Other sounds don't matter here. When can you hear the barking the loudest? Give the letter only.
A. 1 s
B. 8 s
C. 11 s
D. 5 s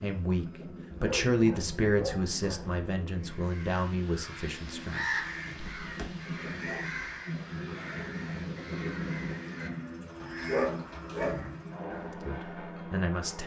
C.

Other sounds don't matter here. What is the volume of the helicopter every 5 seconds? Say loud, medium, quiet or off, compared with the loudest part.
medium, loud, loud.